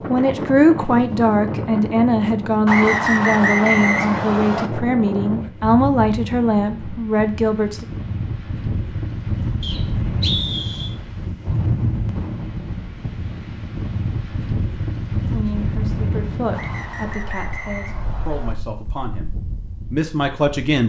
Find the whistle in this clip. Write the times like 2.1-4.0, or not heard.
2.6-4.7, 9.6-10.9, 16.5-18.6.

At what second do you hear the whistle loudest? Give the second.
4 s.